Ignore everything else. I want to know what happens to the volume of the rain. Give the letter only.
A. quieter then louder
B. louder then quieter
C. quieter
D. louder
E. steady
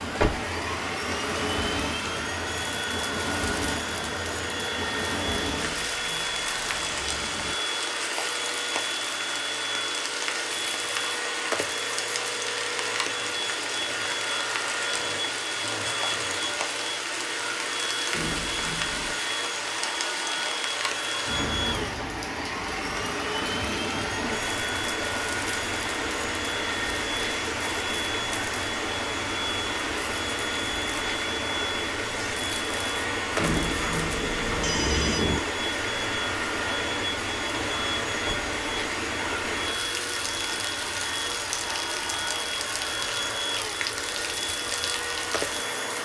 E.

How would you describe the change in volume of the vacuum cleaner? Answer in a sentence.
The volume of the vacuum cleaner stays about the same.